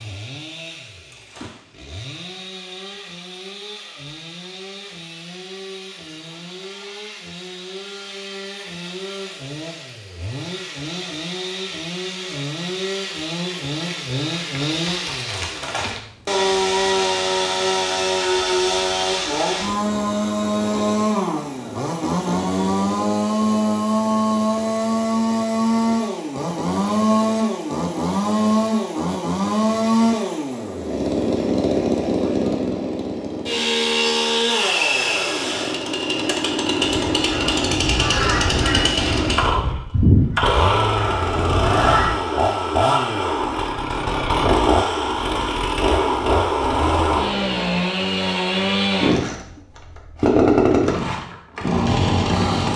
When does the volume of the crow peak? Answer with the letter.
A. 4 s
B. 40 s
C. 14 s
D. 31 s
B.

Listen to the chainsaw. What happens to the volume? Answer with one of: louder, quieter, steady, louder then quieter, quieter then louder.
louder.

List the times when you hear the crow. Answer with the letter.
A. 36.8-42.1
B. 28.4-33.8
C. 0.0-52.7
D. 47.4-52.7
A.